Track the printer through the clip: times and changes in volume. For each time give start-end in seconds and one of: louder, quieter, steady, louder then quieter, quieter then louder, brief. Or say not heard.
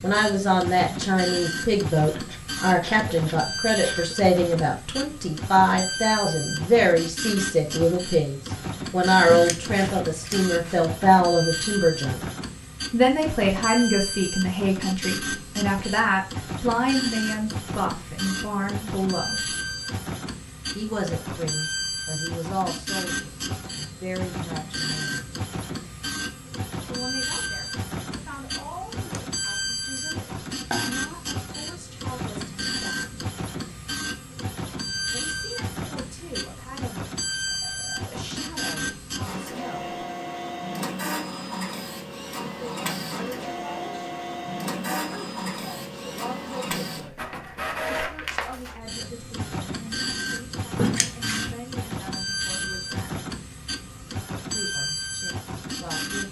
0.0-56.2 steady.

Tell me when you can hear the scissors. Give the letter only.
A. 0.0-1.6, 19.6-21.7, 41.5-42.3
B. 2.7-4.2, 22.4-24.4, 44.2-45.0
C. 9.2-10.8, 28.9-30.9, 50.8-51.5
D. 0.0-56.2
C.